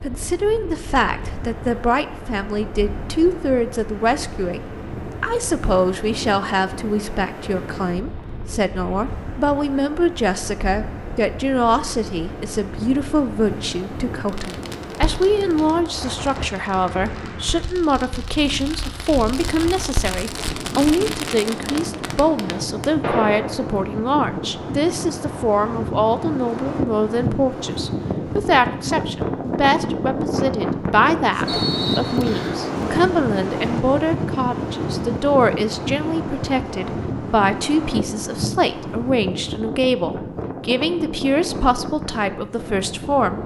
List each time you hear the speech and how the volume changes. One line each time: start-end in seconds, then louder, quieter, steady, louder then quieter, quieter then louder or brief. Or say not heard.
0.0-43.4 steady.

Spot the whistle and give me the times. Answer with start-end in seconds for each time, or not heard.
31.4-32.6.